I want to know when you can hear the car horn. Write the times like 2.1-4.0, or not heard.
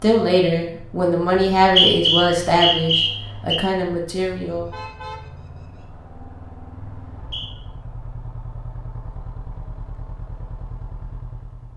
4.5-5.8.